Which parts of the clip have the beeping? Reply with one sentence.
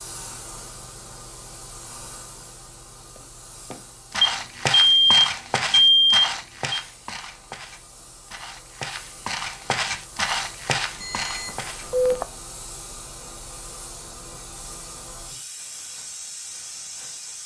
You can hear the beeping from 4.2 to 6.8 s and from 11.0 to 12.2 s.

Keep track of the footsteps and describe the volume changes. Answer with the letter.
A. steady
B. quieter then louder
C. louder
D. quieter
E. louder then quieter
B.